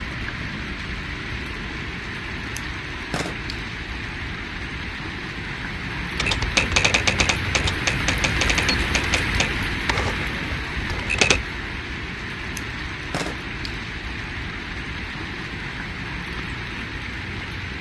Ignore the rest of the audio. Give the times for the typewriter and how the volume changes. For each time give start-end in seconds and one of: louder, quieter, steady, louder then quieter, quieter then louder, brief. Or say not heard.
6.2-11.4 quieter.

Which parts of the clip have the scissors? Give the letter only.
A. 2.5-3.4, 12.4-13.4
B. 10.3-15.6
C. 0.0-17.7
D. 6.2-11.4
A.